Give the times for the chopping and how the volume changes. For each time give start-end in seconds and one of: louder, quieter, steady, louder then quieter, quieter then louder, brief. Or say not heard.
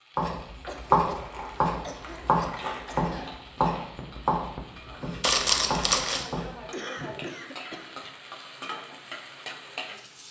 0.1-6.6 quieter.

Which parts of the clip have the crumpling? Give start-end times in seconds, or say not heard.
0.7-3.4, 5.2-6.2.